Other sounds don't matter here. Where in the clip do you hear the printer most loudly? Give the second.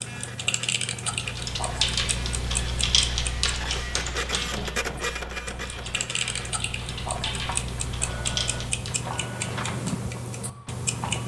5 s.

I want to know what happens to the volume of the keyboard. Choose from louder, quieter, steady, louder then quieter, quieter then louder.
quieter then louder.